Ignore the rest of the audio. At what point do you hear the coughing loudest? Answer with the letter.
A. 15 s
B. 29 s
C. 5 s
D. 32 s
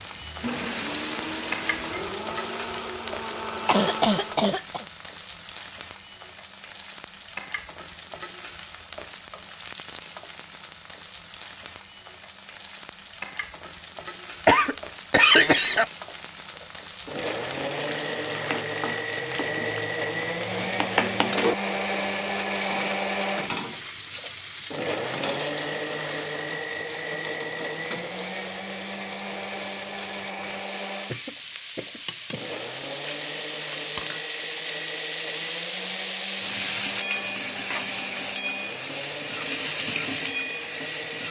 A.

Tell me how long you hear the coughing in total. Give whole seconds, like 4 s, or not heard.
4 s.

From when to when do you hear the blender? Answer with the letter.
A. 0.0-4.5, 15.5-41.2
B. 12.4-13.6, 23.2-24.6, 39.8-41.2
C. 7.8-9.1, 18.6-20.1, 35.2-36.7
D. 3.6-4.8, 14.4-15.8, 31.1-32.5
A.